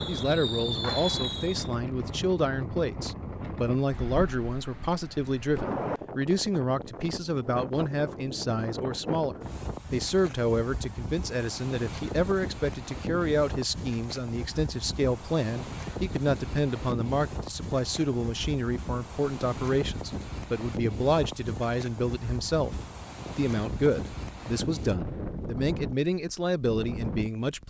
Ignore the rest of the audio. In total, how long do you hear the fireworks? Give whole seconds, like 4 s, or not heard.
2 s.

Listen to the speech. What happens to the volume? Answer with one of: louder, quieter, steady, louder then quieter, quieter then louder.
steady.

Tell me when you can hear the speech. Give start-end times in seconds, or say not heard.
0.1-27.6.